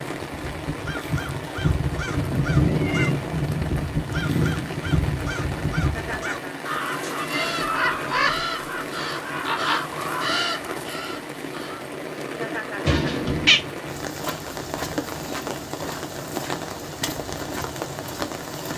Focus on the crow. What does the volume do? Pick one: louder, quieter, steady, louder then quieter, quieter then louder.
steady.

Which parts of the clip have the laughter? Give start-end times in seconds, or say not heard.
5.9-6.5, 12.3-13.2.